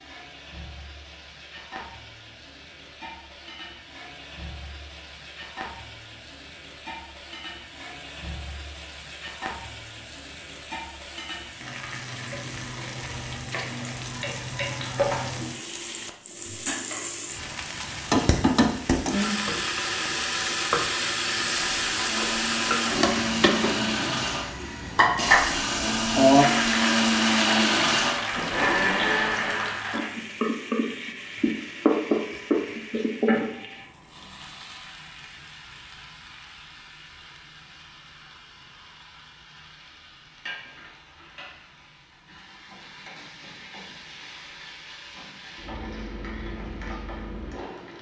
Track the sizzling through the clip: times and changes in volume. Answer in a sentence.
You can hear the sizzling from 0.0 to 47.9 s, getting louder then quieter.